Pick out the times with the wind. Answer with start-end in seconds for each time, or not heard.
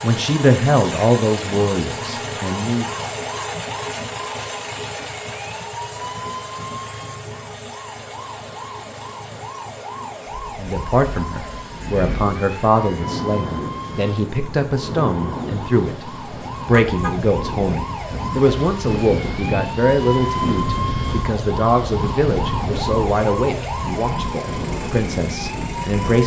10.2-26.2.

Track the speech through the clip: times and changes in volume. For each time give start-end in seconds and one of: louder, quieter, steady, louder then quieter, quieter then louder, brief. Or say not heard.
0.0-2.9 brief
10.6-26.2 steady.